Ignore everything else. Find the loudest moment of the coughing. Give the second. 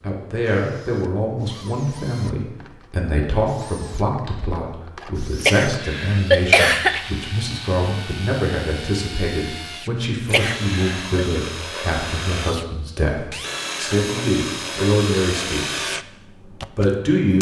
6 s.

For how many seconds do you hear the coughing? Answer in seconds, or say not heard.
3 s.